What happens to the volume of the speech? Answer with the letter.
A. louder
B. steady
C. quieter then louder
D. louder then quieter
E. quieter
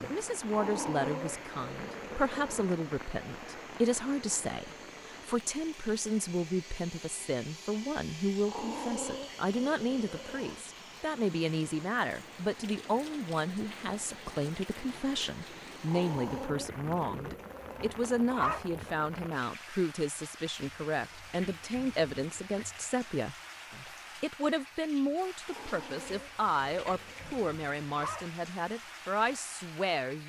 B.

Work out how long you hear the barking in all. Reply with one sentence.
The barking can be heard for 10 seconds in total.